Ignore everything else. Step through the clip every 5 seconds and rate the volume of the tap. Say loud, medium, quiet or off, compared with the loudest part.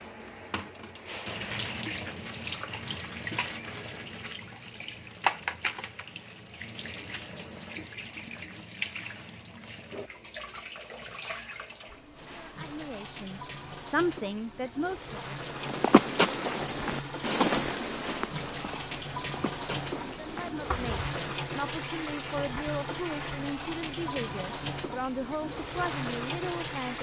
loud, loud, medium, loud, loud, loud.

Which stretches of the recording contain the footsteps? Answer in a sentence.
The footsteps can be heard from 15.6 to 21.1 s.